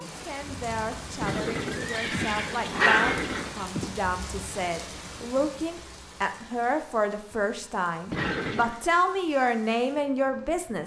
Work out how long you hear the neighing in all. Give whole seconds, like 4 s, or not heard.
3 s.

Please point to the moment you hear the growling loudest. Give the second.
3 s.